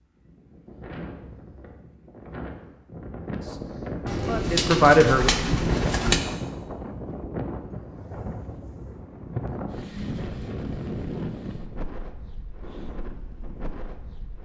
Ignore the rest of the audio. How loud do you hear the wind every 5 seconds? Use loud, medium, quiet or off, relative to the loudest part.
medium, loud, loud.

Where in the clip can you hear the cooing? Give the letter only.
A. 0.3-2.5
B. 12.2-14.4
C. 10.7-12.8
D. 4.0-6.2
D.